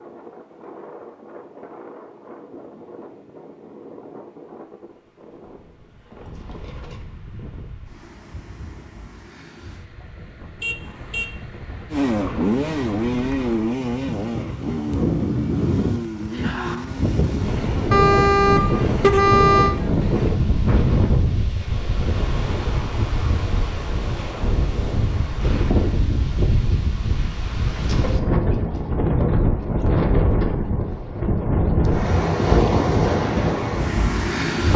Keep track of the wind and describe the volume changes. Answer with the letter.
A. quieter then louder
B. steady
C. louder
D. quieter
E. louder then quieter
C.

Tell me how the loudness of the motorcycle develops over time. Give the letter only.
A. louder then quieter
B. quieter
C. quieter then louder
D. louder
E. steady
B.